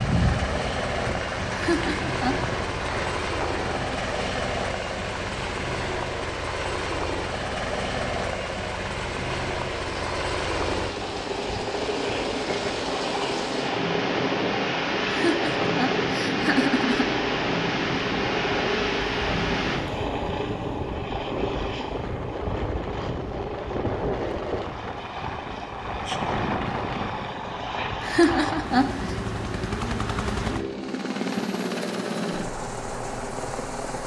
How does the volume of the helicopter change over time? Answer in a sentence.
The volume of the helicopter stays about the same.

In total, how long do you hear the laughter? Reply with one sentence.
The laughter can be heard for 4 seconds in total.